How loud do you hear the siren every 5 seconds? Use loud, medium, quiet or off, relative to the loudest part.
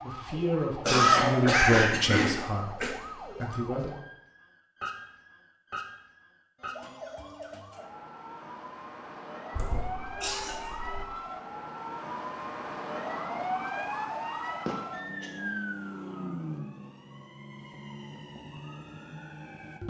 medium, medium, loud, loud.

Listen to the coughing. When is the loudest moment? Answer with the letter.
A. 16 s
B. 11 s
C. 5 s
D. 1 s
D.